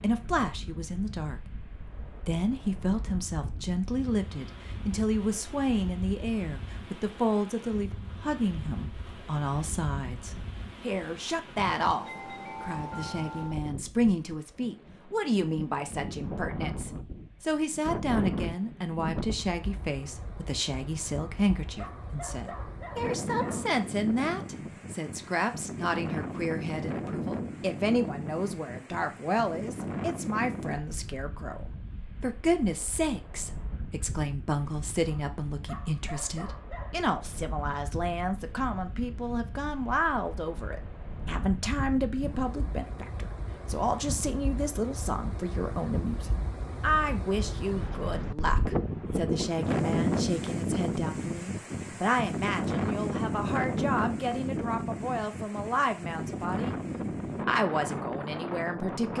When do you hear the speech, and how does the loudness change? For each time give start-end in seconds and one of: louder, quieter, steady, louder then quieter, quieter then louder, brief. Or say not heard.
0.0-59.1 steady.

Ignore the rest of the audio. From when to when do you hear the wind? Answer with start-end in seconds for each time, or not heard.
0.0-59.1.